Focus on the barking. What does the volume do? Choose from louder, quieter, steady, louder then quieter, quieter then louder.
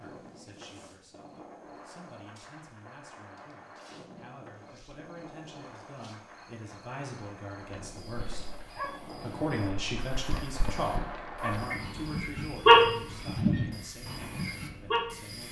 louder then quieter.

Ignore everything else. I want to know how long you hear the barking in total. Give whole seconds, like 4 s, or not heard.
7 s.